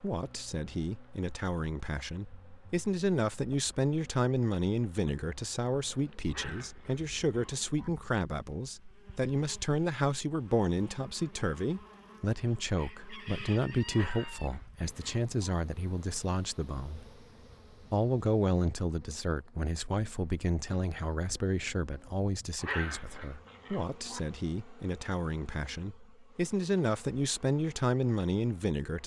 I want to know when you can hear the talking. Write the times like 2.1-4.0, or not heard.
0.0-17.1, 17.9-29.0.